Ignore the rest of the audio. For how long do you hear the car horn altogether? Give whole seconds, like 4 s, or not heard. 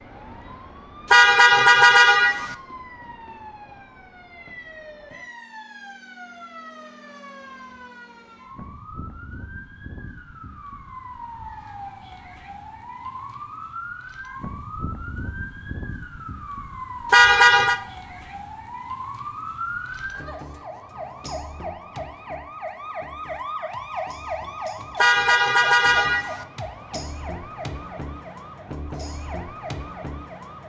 4 s.